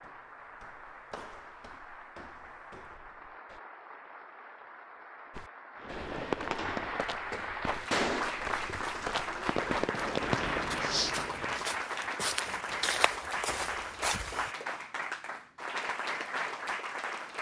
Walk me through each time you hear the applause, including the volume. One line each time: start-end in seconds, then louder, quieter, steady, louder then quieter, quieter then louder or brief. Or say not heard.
0.0-17.3 louder.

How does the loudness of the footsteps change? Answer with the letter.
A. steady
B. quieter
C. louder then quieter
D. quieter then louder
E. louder
E.